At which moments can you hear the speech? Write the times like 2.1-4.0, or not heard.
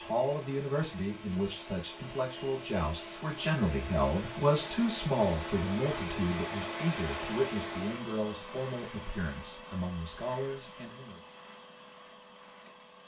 0.0-11.2.